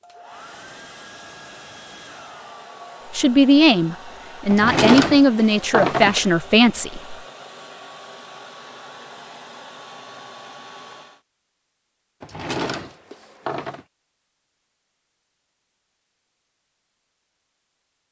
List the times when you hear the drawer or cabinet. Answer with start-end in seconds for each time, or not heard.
4.5-6.2, 12.2-13.8.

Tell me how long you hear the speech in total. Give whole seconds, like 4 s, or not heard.
4 s.